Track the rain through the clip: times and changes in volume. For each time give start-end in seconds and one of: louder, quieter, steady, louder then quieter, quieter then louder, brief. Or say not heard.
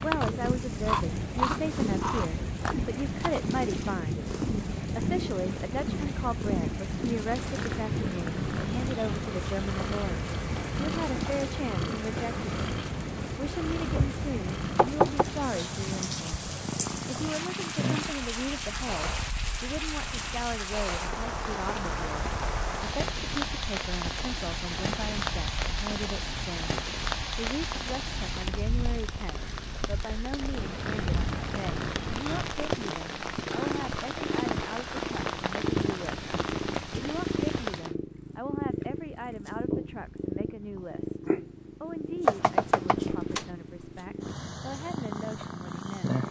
0.0-38.0 steady.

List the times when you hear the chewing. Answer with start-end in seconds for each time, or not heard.
0.0-3.4.